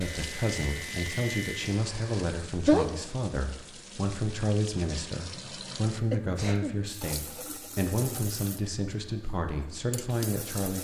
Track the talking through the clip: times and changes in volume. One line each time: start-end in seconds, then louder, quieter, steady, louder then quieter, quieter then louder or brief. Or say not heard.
0.0-10.7 steady.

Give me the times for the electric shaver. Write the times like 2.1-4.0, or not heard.
0.0-1.8.